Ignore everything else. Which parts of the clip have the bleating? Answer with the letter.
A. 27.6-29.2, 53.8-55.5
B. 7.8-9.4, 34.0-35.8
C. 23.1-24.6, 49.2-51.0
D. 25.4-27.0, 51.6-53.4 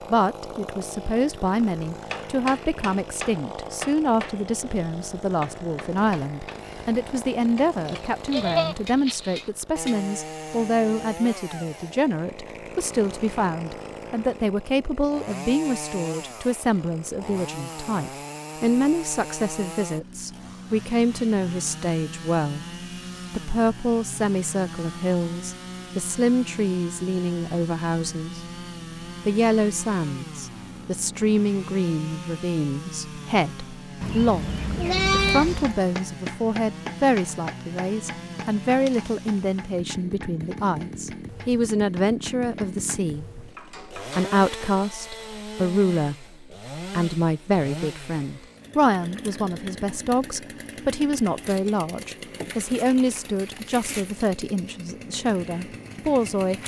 B.